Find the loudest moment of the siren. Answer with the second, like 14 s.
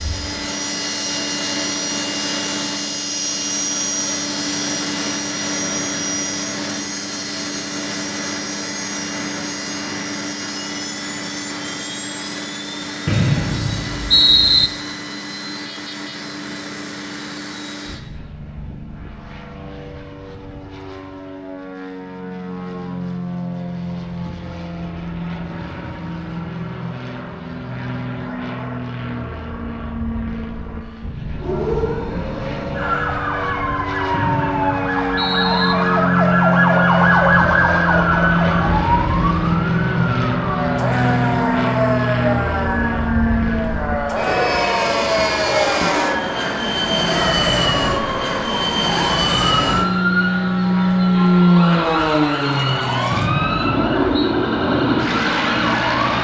37 s.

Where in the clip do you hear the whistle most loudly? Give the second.
14 s.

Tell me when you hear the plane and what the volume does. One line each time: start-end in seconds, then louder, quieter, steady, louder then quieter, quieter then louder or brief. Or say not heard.
0.0-56.1 quieter then louder.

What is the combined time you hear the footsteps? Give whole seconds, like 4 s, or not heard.
not heard.